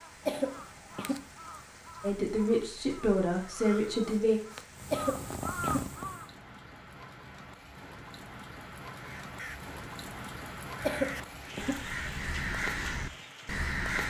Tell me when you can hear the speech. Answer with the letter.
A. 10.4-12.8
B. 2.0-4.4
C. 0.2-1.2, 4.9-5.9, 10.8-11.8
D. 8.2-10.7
B.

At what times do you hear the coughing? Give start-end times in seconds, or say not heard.
0.2-1.2, 4.9-5.9, 10.8-11.8.